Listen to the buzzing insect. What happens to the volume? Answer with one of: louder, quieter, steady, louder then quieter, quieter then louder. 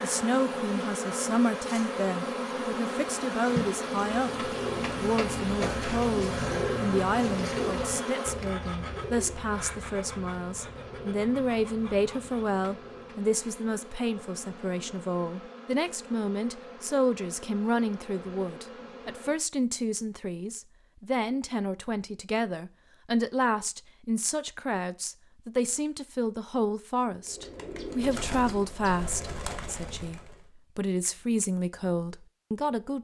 quieter.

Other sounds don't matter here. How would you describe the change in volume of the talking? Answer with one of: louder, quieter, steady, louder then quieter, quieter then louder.
steady.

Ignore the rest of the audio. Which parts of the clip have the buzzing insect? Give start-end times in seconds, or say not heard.
0.0-19.4.